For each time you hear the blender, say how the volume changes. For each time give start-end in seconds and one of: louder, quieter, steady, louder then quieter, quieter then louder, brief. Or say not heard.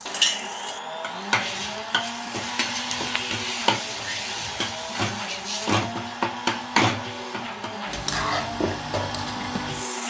0.0-10.0 steady.